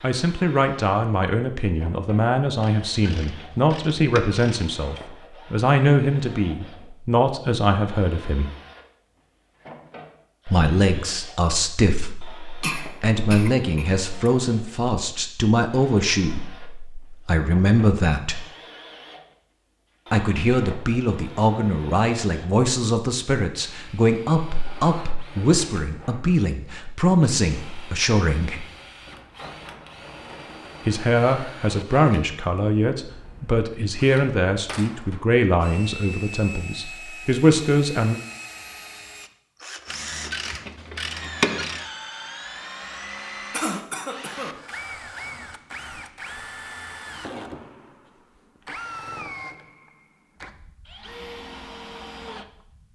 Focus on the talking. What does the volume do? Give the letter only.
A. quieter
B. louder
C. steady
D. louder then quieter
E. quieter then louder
C.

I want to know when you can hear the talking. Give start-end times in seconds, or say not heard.
0.0-8.5, 10.4-18.4, 20.1-28.6, 30.9-38.1.